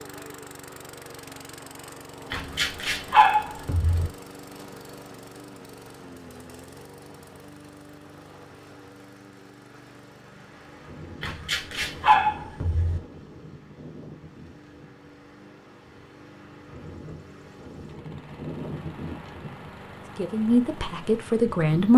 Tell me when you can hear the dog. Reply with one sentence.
The dog can be heard from 2.3 to 4.1 s and from 11.2 to 13.0 s.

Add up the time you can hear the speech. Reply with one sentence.
You can hear the speech for 2 seconds altogether.